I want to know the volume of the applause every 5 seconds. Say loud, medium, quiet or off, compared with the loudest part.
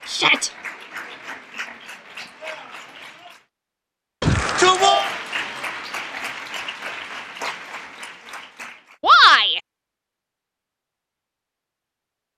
loud, loud, off.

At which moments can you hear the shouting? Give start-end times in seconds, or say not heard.
0.1-0.5, 4.2-5.1, 9.0-9.6.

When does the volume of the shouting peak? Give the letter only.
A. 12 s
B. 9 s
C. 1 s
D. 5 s
B.